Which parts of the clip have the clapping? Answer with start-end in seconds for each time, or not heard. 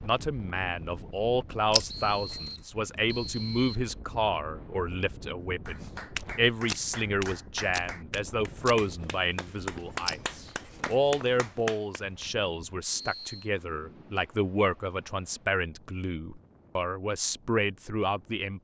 5.7-12.2.